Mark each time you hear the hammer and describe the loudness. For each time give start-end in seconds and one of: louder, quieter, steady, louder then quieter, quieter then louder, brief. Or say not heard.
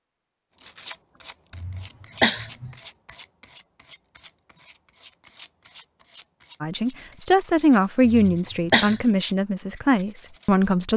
not heard.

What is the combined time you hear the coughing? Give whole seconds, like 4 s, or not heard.
2 s.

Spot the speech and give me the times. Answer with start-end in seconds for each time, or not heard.
6.6-10.9.